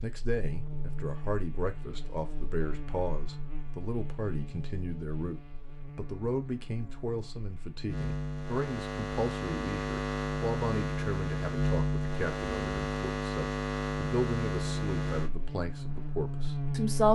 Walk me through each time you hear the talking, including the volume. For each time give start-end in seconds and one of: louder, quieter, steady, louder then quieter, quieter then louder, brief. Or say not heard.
0.0-17.1 steady.